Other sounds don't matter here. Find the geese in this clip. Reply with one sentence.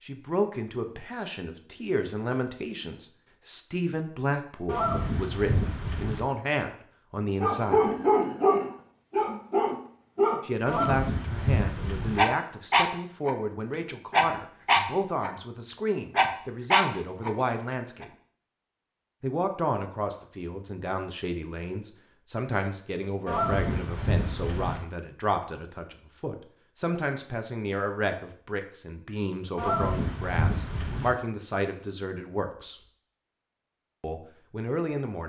The geese can be heard from 4.7 to 6.2 s, from 10.7 to 12.2 s, from 23.2 to 24.8 s and from 29.6 to 31.1 s.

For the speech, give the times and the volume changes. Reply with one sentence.
The speech can be heard from 0.0 to 7.9 s, at a steady volume; from 10.4 to 18.1 s, at a steady volume; from 19.2 to 32.8 s, at a steady volume; and briefly from 34.0 to 35.2 s.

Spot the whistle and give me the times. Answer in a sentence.
You can't hear the whistle here.